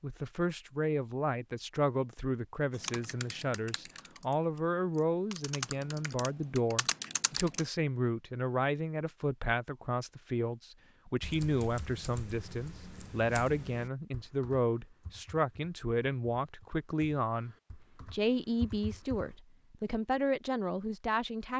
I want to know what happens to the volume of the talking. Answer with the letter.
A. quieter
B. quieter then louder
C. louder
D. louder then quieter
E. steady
E.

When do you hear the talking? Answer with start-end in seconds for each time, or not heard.
0.0-21.5.